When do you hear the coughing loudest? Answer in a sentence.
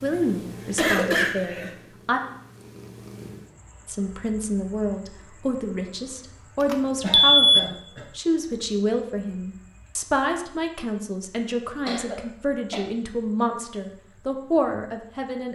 The volume of the coughing peaks at 1 second.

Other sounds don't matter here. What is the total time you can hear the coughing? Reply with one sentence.
The coughing can be heard for 3 seconds in total.